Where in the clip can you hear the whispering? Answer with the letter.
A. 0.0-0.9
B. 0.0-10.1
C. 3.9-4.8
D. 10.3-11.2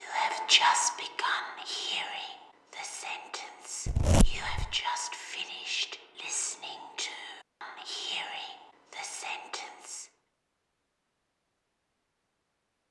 B.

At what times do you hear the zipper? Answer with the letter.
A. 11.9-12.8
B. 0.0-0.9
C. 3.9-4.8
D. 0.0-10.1
C.